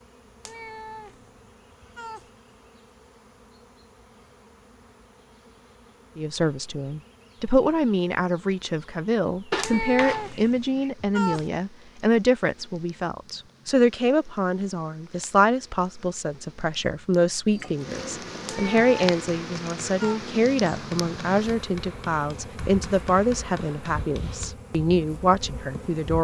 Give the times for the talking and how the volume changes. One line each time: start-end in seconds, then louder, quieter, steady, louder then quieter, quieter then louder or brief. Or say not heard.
6.2-26.1 steady.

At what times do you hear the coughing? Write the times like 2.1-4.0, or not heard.
9.5-10.9.